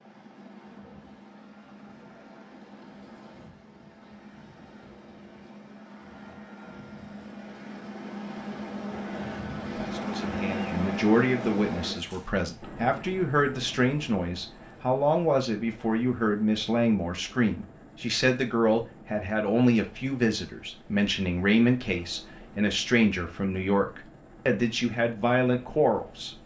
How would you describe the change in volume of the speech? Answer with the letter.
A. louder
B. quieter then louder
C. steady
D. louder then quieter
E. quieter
C.